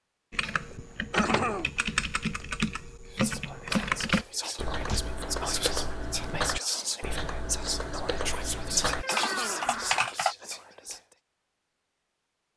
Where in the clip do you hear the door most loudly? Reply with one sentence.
The loudest moment of the door is at 9 seconds.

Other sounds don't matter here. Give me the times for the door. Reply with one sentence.
The door can be heard from 0.8 to 1.6 s, from 4.6 to 5.2 s and from 9.0 to 10.1 s.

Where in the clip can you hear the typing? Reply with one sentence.
You can hear the typing from 0.3 to 10.3 s.